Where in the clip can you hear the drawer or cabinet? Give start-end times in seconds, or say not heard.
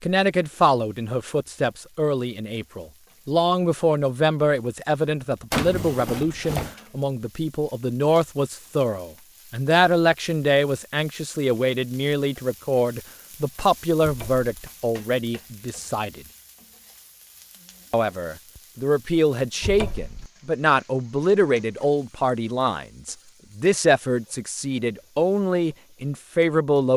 5.5-6.8, 14.0-14.4, 19.6-20.3.